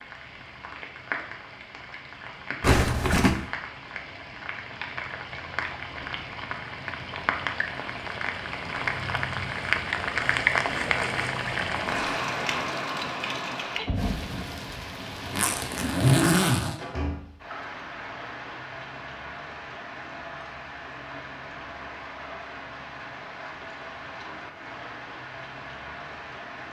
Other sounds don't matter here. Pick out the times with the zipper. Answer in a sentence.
The zipper can be heard from 2.6 to 3.5 s and from 15.3 to 16.8 s.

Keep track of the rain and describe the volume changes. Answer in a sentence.
The loudness of the rain goes up, then down.